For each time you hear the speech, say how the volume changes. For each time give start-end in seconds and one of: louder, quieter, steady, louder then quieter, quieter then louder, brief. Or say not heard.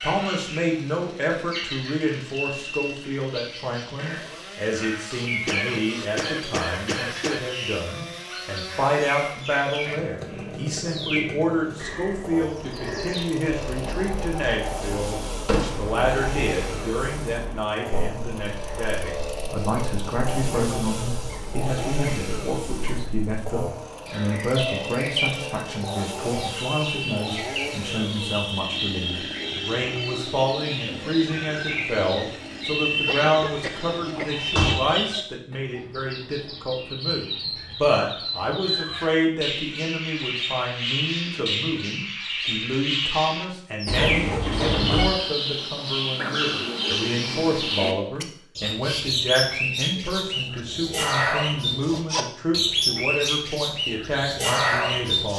0.0-55.3 steady.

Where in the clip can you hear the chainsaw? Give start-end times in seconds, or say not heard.
0.0-34.4.